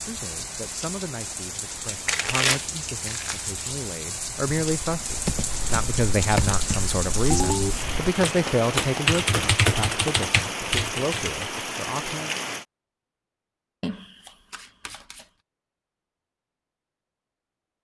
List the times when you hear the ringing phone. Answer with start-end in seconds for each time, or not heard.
7.3-7.8.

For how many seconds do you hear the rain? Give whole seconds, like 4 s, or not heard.
13 s.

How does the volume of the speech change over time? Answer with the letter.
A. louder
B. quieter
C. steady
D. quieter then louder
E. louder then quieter
E.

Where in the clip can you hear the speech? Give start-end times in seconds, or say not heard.
0.0-12.3.